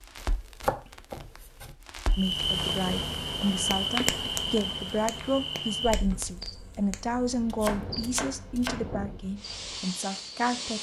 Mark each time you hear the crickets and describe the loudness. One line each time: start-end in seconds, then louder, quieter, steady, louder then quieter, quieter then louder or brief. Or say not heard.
2.1-10.6 quieter.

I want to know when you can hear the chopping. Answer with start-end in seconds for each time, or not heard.
0.1-1.8, 7.5-8.8.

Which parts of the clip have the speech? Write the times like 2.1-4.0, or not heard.
2.1-10.7.